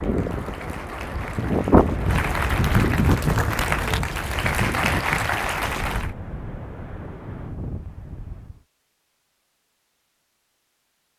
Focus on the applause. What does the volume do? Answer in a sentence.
The loudness of the applause goes up.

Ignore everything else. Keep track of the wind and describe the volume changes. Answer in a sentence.
The volume of the wind goes down.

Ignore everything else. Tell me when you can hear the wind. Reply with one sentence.
You can hear the wind from 0.0 to 8.7 s.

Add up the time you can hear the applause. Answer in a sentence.
You can hear the applause for 6 seconds altogether.